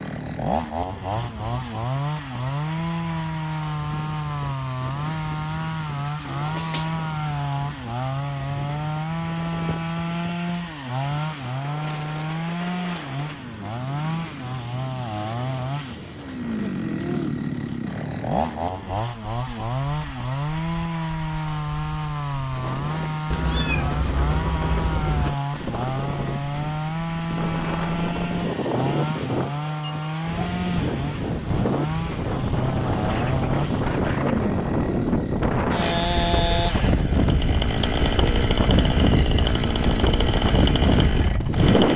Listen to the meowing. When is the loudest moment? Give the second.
24 s.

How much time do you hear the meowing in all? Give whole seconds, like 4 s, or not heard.
3 s.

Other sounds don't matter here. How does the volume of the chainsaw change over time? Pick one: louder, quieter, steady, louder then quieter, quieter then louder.
steady.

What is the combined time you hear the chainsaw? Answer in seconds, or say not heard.
42 s.